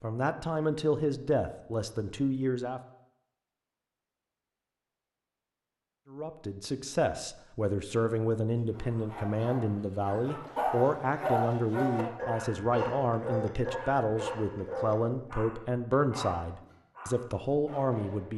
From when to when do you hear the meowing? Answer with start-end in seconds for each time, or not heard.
not heard.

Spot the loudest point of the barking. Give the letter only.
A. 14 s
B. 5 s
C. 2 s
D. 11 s
D.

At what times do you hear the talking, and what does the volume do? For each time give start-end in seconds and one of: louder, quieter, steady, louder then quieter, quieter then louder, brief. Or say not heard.
0.0-2.8 brief
6.1-18.3 steady.